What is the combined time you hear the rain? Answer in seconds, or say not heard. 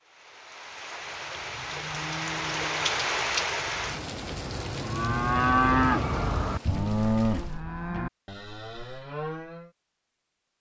8 s.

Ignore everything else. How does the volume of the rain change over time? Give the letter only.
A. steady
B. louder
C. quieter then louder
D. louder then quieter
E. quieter
D.